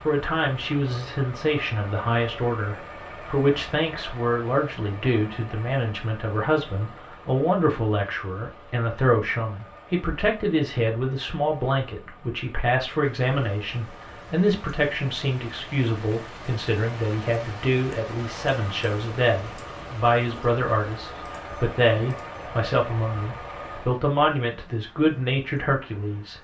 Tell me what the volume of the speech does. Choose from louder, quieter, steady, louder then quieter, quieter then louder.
steady.